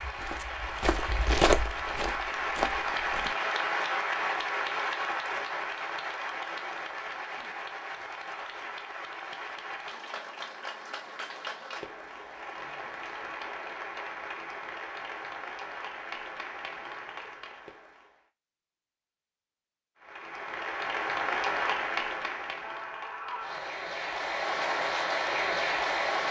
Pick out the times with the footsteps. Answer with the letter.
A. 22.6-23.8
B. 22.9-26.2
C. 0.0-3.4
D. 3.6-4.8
C.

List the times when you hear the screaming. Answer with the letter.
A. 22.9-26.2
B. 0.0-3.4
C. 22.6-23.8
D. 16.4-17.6
C.